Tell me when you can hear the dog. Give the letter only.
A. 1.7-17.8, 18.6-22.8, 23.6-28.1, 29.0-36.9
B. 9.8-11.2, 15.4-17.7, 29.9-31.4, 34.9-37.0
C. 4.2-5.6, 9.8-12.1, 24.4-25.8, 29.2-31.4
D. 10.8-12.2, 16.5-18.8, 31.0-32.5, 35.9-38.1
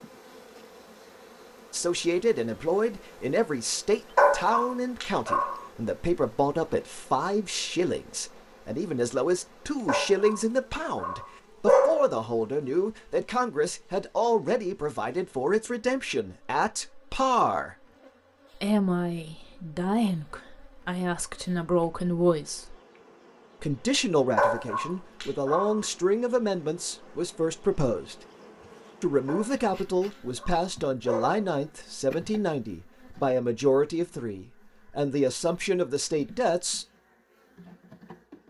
C.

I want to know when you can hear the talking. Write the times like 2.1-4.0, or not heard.
1.7-17.8, 18.6-22.8, 23.6-28.1, 29.0-36.9.